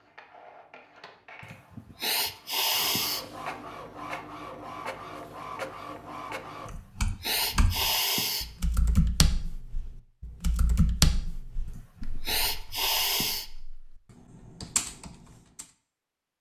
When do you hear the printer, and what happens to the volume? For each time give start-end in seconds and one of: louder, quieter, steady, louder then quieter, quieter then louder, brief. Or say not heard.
0.0-6.8 louder.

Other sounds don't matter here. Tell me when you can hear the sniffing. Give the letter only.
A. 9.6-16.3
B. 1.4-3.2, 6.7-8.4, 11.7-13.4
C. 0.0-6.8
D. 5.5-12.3
B.